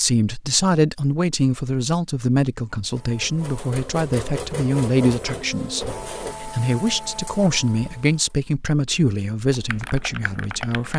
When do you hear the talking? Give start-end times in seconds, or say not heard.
0.0-10.9.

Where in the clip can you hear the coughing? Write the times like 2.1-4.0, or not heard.
not heard.